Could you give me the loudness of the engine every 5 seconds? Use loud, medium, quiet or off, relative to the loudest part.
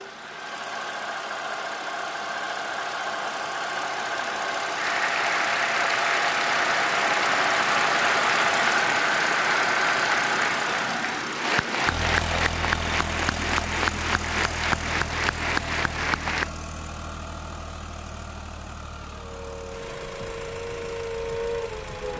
medium, loud, medium, quiet, quiet.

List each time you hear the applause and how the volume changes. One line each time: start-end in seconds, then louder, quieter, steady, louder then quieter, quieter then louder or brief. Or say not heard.
4.8-16.5 steady.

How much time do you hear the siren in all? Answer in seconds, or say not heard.
3 s.